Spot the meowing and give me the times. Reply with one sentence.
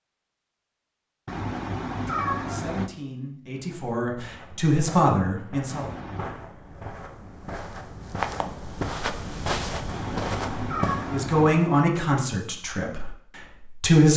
The meowing can be heard from 1.2 to 2.9 s, from 5.7 to 6.3 s and from 9.8 to 11.7 s.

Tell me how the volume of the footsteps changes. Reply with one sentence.
The loudness of the footsteps goes up.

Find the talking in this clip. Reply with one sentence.
The talking can be heard from 2.0 to 5.8 s and from 11.1 to 14.1 s.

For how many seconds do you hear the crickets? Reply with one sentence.
The crickets can't be heard in this clip.